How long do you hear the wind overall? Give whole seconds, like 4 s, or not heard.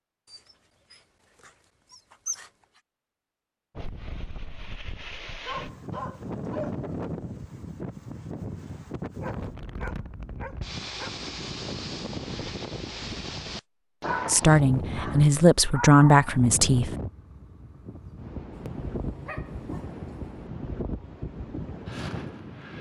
19 s.